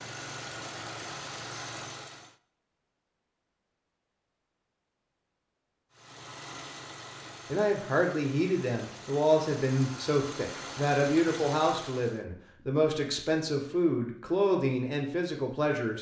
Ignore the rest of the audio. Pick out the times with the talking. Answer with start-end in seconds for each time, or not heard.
7.5-15.9.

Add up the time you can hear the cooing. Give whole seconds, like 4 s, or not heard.
not heard.